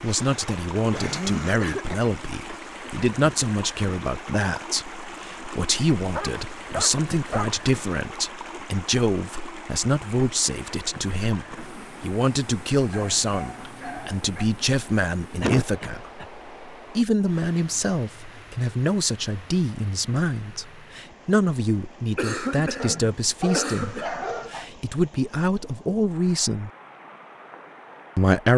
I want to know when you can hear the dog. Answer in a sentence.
The dog can be heard from 6.1 to 7.6 s, from 12.9 to 14.5 s and from 22.8 to 24.7 s.